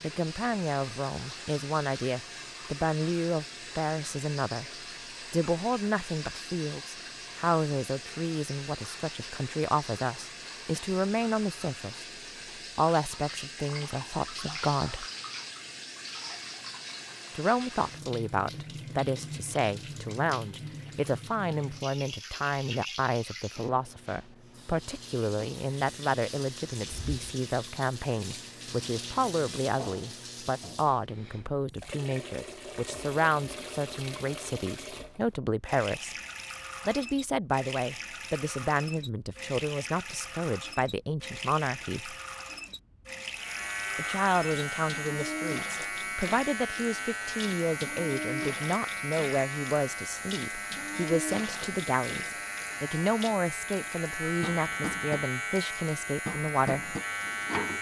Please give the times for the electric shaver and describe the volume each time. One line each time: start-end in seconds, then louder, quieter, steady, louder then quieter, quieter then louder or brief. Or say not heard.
43.4-57.7 steady.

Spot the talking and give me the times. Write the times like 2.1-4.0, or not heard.
0.0-4.7, 5.3-12.1, 12.8-15.1, 17.3-36.1, 36.9-42.1, 44.0-57.0.